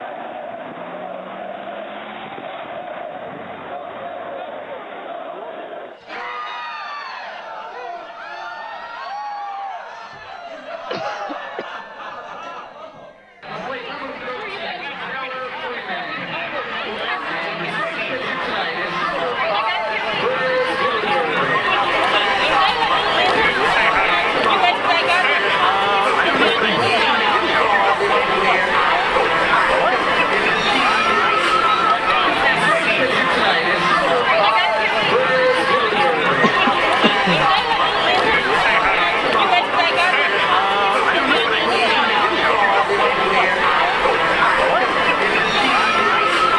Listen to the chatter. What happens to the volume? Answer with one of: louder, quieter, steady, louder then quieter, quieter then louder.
louder.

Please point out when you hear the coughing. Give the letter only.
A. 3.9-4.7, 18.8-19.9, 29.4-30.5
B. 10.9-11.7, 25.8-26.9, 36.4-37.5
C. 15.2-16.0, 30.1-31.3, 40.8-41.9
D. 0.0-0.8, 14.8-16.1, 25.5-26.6
B.